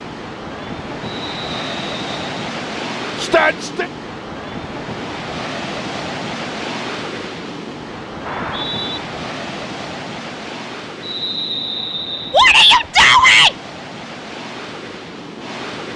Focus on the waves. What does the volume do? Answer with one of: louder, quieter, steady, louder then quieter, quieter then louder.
quieter.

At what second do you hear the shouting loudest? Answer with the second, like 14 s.
13 s.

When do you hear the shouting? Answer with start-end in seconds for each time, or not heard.
3.1-3.9, 12.3-13.6.